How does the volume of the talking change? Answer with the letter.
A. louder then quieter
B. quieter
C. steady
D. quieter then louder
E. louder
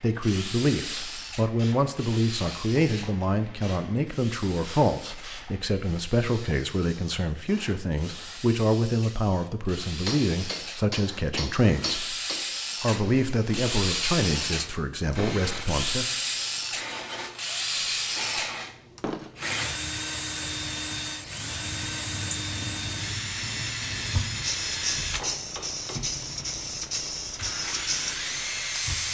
C.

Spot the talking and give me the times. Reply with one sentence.
You can hear the talking from 0.0 to 12.2 s and from 12.8 to 16.1 s.